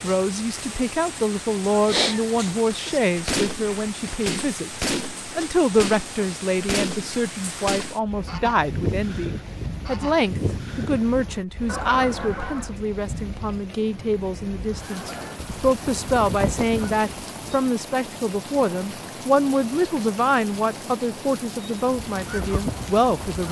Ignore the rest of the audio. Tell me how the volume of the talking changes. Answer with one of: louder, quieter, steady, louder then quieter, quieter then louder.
steady.